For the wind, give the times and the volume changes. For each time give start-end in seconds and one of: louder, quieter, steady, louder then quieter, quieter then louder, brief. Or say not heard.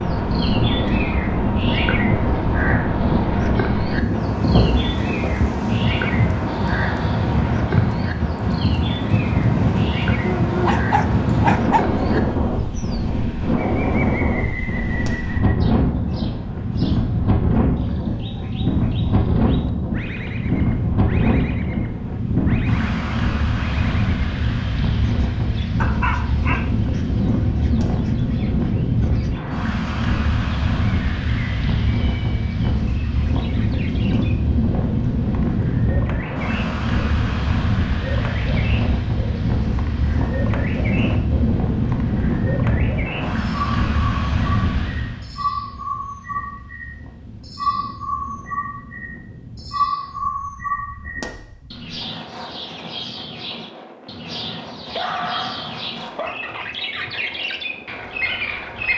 0.0-58.9 quieter.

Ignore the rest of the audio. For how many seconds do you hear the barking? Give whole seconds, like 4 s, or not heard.
4 s.